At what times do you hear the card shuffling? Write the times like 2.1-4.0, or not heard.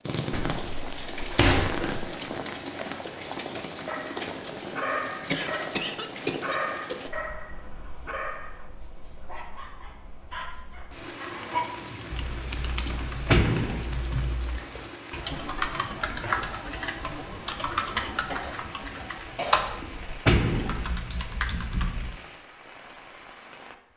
not heard.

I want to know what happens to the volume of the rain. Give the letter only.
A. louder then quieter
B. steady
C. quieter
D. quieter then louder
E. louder
C.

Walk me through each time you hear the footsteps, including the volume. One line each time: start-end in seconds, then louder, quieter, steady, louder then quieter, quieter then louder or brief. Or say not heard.
not heard.